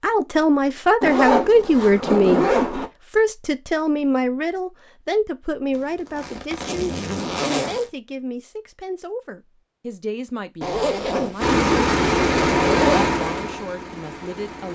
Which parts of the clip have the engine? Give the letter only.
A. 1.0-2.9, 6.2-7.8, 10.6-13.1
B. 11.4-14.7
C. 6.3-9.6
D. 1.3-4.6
B.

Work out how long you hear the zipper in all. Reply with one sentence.
You can hear the zipper for 6 seconds altogether.